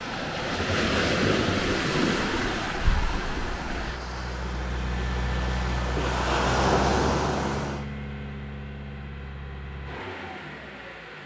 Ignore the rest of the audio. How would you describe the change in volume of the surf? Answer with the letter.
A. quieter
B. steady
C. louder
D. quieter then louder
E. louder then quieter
D.